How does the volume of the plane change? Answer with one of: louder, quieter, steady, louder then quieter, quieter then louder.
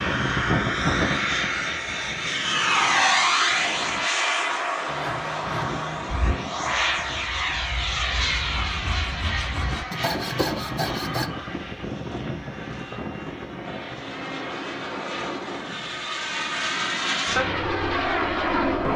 quieter then louder.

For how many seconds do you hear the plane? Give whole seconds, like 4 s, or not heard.
19 s.